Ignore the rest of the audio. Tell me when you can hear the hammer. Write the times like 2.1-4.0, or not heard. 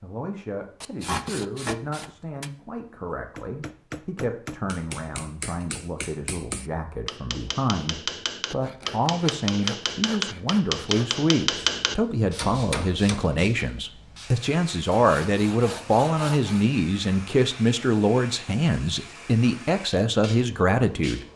3.4-13.3.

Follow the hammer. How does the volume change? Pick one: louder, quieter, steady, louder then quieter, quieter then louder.
louder.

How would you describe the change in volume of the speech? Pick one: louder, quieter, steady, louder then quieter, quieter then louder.
louder.